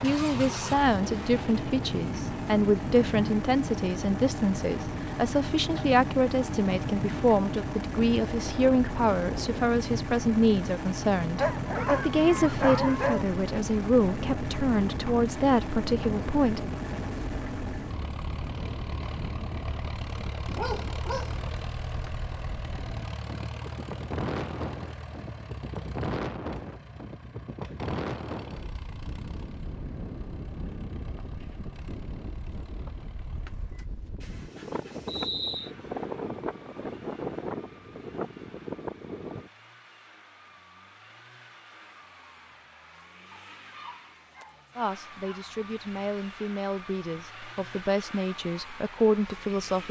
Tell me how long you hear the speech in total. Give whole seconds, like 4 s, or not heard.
22 s.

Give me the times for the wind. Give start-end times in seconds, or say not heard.
0.0-39.5.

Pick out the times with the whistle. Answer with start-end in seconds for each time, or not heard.
35.0-35.7.